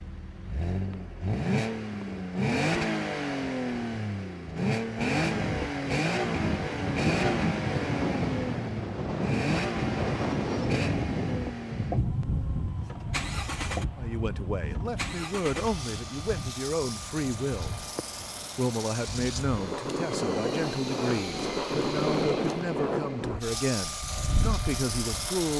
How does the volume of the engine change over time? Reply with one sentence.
The loudness of the engine goes down.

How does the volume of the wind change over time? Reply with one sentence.
The volume of the wind goes down, then up.